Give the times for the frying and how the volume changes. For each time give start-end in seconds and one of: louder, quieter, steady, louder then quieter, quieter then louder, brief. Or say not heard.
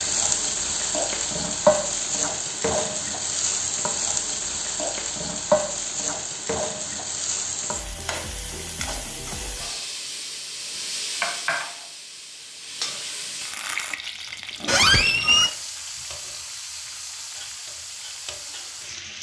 0.0-19.1 quieter.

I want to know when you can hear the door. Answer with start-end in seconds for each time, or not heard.
14.7-15.5.